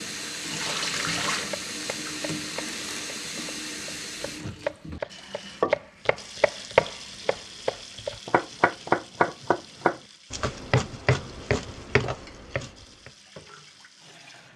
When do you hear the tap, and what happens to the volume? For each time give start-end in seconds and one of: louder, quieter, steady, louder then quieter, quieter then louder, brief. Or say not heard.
0.0-14.5 quieter.